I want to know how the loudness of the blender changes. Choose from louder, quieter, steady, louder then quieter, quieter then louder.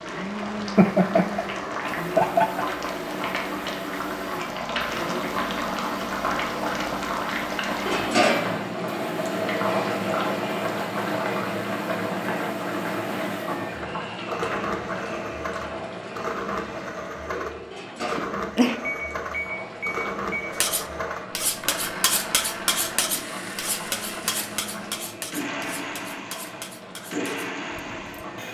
steady.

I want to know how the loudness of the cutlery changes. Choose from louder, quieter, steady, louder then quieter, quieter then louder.
quieter.